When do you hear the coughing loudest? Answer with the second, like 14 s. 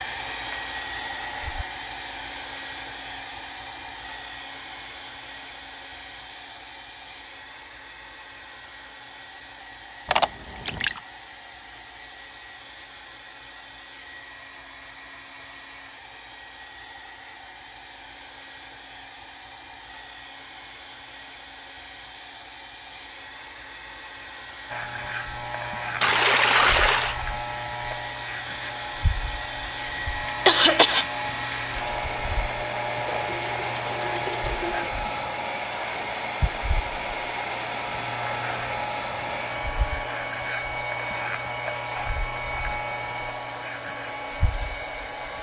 31 s.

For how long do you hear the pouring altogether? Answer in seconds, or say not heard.
4 s.